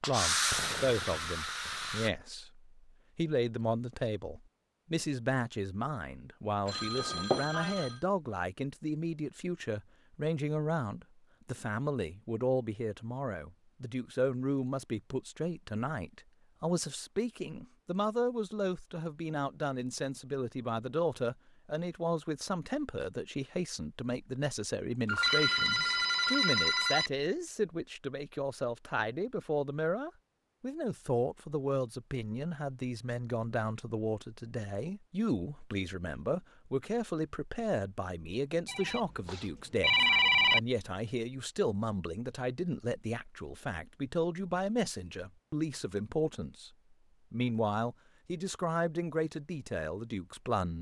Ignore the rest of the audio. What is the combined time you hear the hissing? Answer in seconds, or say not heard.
2 s.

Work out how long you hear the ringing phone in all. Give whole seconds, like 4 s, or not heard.
5 s.